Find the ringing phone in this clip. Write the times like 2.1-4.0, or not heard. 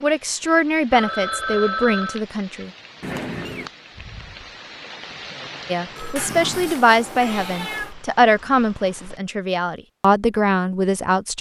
0.9-2.2, 6.0-7.5.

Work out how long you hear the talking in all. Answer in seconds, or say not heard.
8 s.